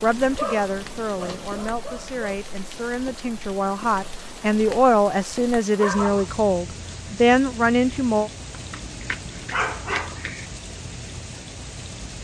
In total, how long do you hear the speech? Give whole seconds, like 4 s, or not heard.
8 s.